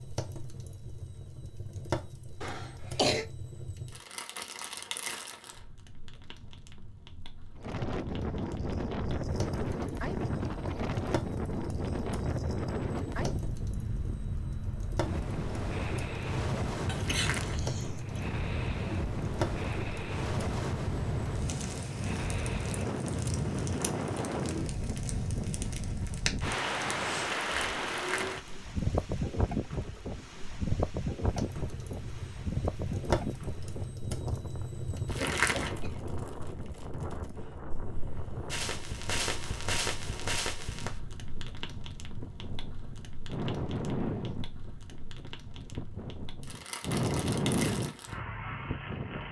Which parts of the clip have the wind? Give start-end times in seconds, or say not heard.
7.5-49.2.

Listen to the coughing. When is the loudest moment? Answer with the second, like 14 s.
3 s.